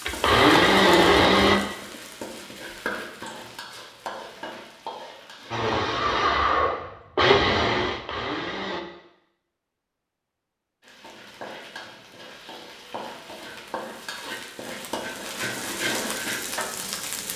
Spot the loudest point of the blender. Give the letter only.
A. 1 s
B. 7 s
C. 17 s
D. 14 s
A.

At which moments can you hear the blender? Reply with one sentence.
The blender can be heard from 0.0 to 1.6 s and from 5.5 to 8.8 s.